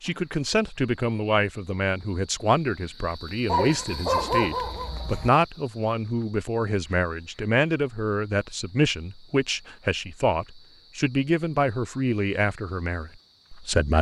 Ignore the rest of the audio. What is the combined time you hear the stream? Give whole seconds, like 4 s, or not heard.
not heard.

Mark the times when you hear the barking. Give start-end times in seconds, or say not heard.
3.5-5.3.